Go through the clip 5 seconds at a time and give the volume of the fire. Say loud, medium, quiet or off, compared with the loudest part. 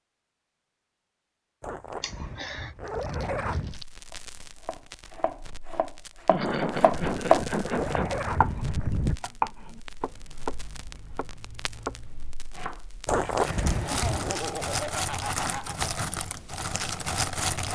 quiet, quiet, medium, loud.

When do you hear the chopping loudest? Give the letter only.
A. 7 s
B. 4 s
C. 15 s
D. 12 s
A.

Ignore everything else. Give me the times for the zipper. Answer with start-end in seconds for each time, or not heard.
1.6-3.9, 6.5-9.2, 13.1-14.3.